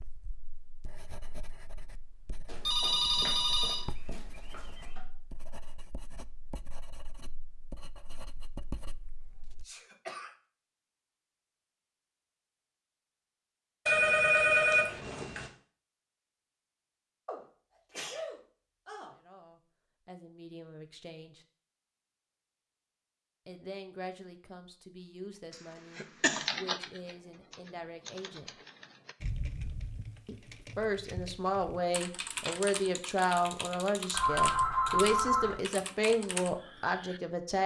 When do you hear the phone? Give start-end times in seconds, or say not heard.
2.5-5.0, 13.8-15.5, 34.1-35.6.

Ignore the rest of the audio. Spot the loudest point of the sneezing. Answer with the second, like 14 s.
26 s.